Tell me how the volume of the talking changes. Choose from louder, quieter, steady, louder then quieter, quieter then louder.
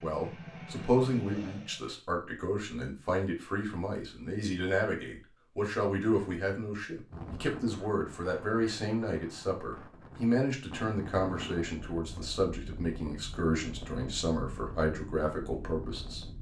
steady.